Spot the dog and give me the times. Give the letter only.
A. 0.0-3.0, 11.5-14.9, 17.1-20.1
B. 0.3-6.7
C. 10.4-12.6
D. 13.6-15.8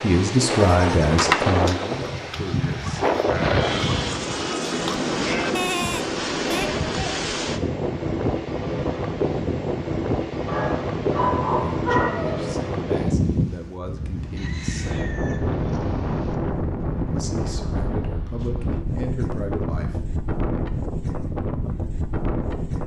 C.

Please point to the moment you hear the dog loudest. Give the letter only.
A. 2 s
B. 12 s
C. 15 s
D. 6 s
B.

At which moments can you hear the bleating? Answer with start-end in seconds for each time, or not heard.
0.3-6.7.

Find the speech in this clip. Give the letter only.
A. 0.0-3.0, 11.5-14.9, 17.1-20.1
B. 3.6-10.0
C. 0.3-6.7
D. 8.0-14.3
A.